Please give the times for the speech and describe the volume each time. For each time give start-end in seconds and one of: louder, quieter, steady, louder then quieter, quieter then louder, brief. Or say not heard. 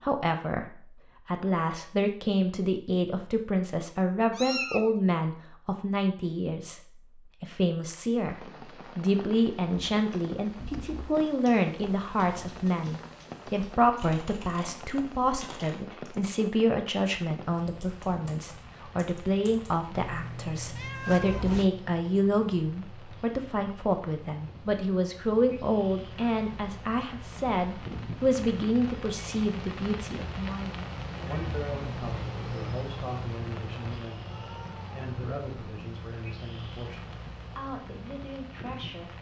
0.0-39.1 quieter.